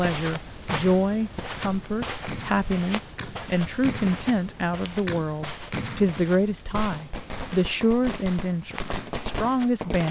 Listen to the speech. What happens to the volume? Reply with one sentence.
The volume of the speech stays about the same.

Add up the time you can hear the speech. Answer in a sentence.
You can hear the speech for 10 seconds altogether.